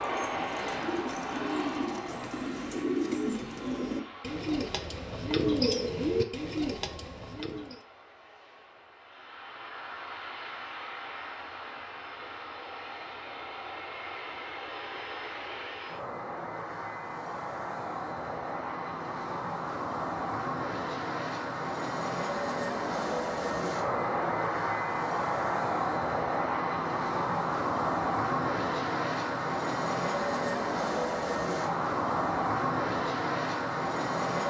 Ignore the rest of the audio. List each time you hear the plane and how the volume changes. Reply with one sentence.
The plane can be heard from 0.0 to 34.4 s, getting louder.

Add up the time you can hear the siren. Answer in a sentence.
The siren can't be heard in this clip.